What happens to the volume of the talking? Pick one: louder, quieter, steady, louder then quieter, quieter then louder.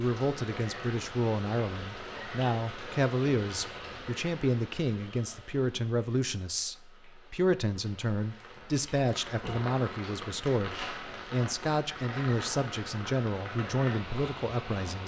steady.